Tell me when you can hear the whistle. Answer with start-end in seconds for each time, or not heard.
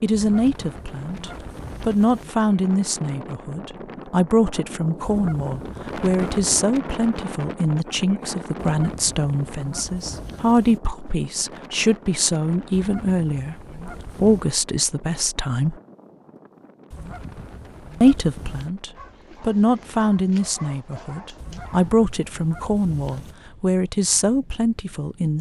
not heard.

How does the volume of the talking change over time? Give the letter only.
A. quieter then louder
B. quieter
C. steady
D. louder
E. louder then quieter
C.